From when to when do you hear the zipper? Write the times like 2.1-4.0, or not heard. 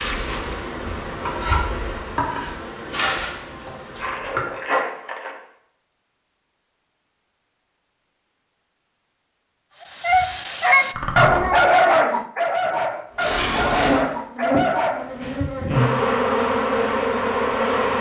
4.0-5.3, 10.9-11.6.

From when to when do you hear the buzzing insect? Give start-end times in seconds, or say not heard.
0.0-4.5, 13.2-17.9.